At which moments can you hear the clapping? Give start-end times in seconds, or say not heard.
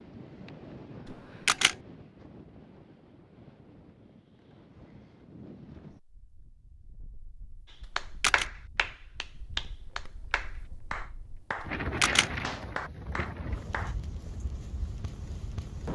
8.0-13.9.